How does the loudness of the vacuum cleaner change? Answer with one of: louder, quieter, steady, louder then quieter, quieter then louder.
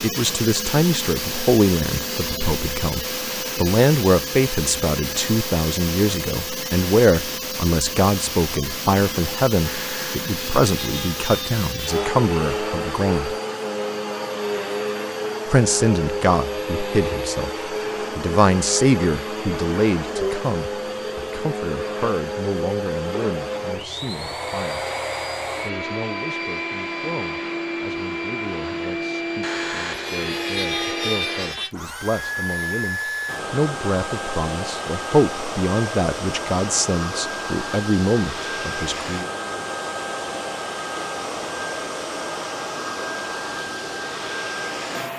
steady.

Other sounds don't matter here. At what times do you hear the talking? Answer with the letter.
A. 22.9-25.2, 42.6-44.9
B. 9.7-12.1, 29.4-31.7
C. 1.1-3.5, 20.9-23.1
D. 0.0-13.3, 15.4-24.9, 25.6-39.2
D.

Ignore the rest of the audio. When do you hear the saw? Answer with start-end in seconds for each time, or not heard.
9.7-12.1, 29.4-31.7.